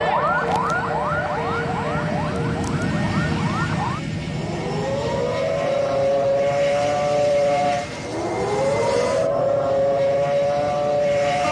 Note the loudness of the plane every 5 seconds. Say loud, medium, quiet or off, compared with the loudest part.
loud, medium, medium.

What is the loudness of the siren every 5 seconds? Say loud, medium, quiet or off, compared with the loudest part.
medium, loud, loud.